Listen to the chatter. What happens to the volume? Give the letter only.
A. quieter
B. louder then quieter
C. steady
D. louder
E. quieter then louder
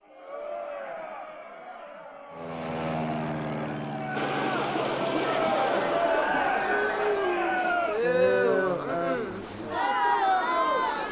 D.